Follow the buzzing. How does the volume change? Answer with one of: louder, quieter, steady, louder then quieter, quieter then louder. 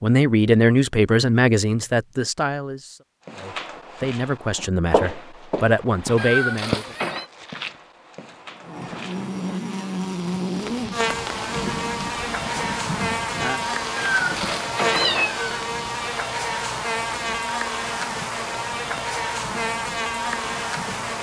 steady.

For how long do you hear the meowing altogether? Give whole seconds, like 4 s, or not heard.
3 s.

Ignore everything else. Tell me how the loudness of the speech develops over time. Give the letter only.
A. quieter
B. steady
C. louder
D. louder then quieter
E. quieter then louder
E.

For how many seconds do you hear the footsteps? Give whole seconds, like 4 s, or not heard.
6 s.